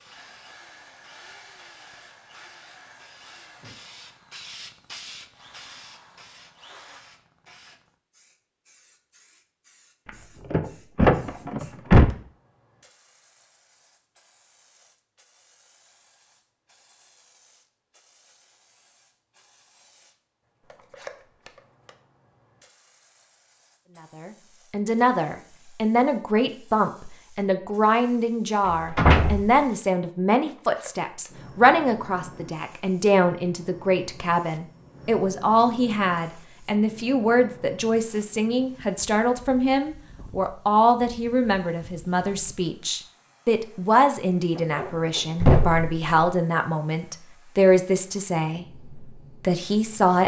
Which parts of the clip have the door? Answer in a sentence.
The door can be heard from 10.1 to 12.1 s, from 28.9 to 29.5 s and from 44.5 to 46.3 s.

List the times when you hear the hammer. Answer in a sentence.
The hammer can't be heard in this clip.